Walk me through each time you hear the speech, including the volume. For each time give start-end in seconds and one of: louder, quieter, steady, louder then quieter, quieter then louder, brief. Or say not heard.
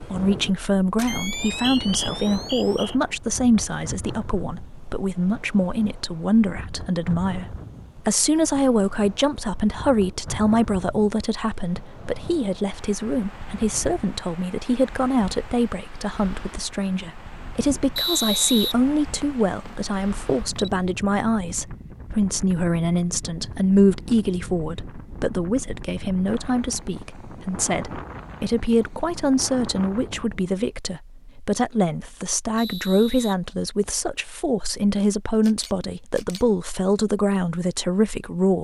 0.0-38.6 steady.